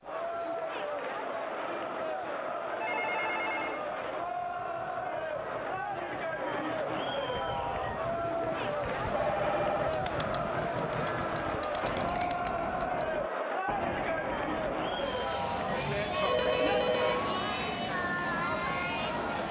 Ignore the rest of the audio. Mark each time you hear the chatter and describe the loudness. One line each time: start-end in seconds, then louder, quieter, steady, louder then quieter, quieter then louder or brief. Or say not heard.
0.0-19.4 steady.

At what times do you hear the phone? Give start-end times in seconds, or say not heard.
2.8-3.9, 9.1-9.9, 15.7-17.3.